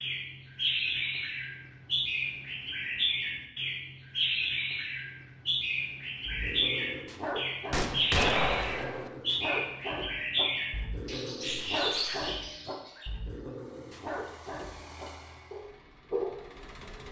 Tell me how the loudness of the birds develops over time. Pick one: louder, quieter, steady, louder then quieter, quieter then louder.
steady.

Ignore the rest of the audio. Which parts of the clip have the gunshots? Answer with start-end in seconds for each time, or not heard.
7.7-9.1.